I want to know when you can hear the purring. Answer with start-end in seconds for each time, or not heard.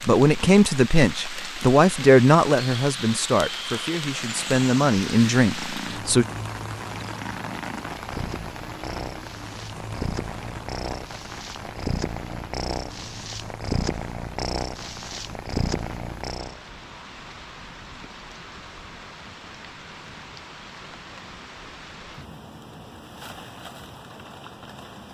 4.1-16.6.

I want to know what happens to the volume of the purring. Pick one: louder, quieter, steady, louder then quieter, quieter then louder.
louder.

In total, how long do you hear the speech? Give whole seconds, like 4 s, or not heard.
6 s.